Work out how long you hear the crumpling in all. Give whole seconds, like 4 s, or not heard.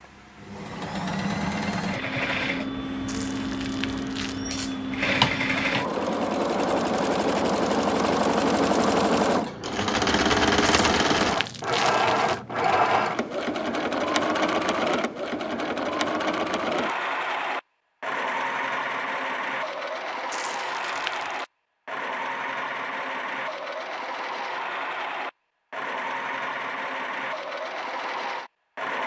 4 s.